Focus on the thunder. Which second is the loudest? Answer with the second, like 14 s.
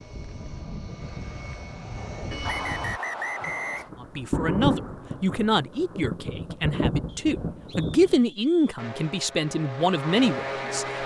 5 s.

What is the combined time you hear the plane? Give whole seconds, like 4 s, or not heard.
5 s.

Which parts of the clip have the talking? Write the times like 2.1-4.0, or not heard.
4.0-11.0.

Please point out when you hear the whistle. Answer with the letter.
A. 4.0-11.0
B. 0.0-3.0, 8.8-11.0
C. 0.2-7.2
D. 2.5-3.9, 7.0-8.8
D.